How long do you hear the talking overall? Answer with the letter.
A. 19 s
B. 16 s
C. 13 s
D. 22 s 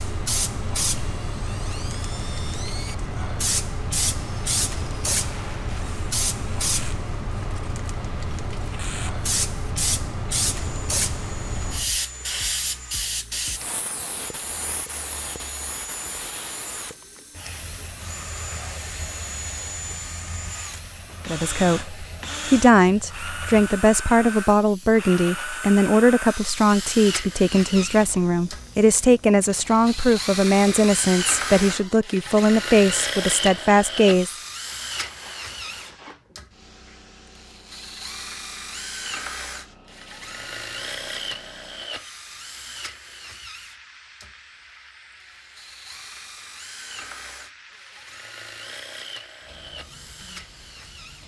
C.